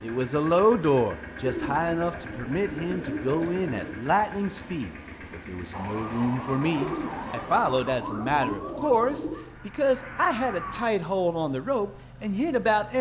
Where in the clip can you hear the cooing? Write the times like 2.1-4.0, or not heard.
1.4-4.0, 6.8-9.5.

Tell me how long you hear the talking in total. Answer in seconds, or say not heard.
13 s.